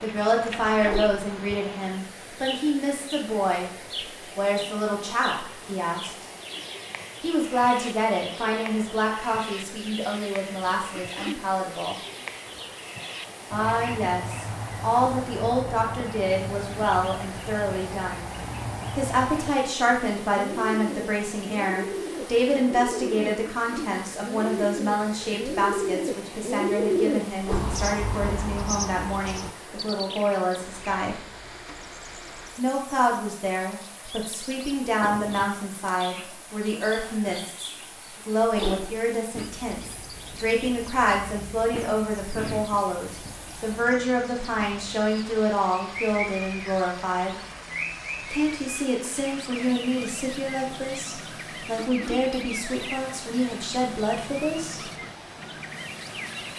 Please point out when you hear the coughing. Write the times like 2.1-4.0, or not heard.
10.9-11.4, 23.4-23.9, 51.8-52.3.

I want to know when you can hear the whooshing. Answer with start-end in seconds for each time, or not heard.
0.7-1.2, 27.3-27.8, 38.4-38.9.